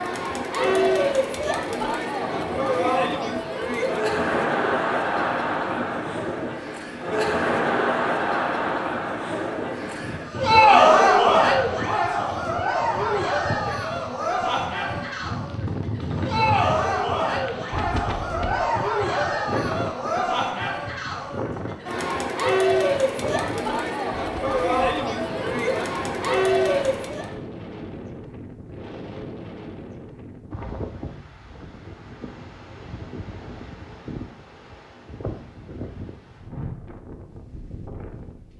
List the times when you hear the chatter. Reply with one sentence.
The chatter can be heard from 0.0 to 27.3 s.